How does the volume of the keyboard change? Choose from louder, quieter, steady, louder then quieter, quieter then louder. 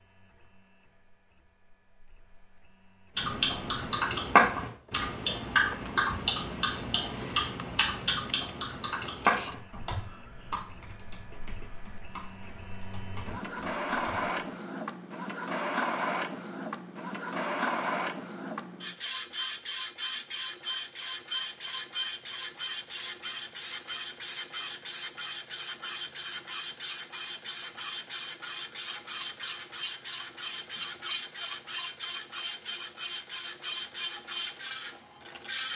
quieter.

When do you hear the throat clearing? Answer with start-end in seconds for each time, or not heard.
not heard.